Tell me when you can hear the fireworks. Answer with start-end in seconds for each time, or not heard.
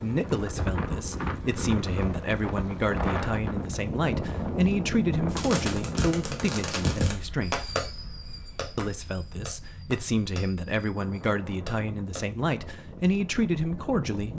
5.3-12.2.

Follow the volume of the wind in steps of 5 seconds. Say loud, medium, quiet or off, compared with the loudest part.
loud, medium, medium.